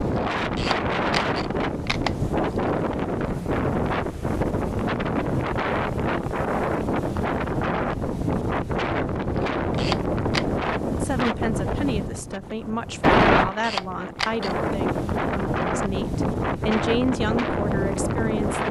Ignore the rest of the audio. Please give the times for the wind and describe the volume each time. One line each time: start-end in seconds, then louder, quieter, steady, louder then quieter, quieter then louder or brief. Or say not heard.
0.0-18.6 steady.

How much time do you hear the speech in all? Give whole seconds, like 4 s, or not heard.
8 s.